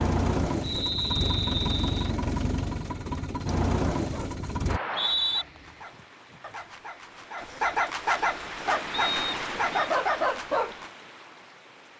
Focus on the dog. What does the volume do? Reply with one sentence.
The loudness of the dog goes up.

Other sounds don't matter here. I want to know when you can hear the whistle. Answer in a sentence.
The whistle can be heard from 0.6 to 2.1 s, from 4.7 to 5.5 s and from 8.9 to 9.9 s.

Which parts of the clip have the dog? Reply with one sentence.
You can hear the dog from 4.0 to 10.9 s.